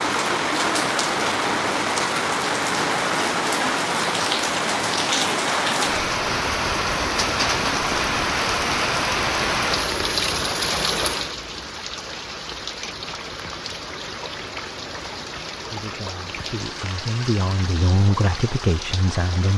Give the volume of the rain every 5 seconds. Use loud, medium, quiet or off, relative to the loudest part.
loud, loud, medium, medium.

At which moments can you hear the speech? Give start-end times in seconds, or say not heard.
15.7-19.5.